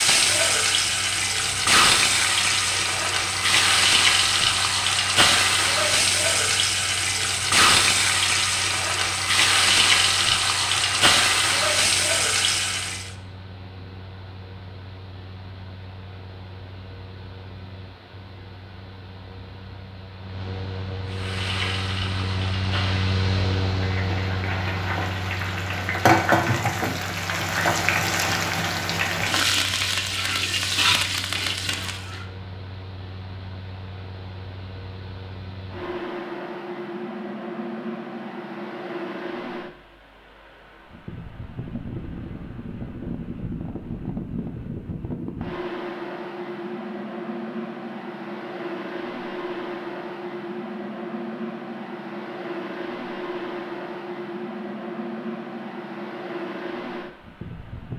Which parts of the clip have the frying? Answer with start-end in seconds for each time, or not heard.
0.0-13.1, 21.1-32.2.